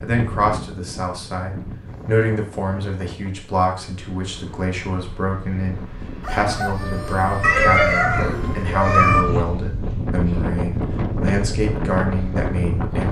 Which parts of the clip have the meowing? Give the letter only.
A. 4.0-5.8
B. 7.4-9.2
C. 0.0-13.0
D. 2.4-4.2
B.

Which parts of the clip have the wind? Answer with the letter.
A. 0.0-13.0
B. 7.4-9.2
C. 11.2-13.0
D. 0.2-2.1
A.